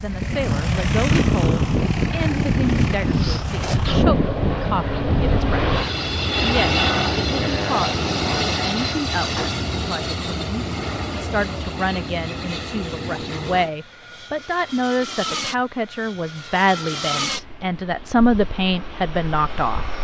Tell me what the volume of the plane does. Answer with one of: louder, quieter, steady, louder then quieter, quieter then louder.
quieter.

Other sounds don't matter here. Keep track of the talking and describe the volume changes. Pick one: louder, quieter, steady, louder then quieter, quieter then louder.
louder.